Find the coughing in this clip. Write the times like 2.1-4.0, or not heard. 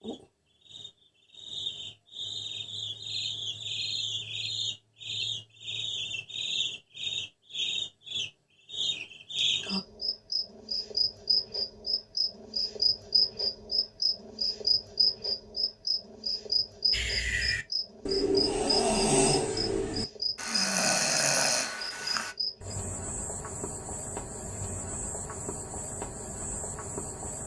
not heard.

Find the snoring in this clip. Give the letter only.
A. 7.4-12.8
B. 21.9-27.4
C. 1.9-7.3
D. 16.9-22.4
D.